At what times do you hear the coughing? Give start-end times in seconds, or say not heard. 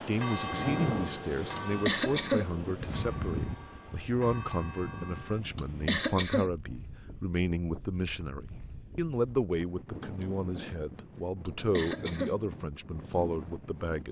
1.6-2.5, 5.5-6.5, 11.4-12.3.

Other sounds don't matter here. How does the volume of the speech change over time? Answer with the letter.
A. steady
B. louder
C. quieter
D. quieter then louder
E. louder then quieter
A.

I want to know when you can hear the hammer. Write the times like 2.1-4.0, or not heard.
not heard.